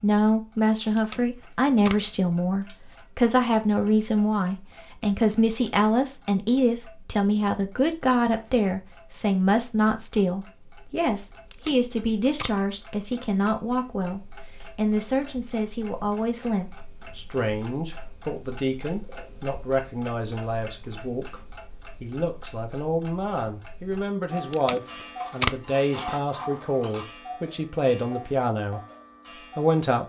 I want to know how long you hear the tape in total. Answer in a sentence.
You can hear the tape for 4 seconds altogether.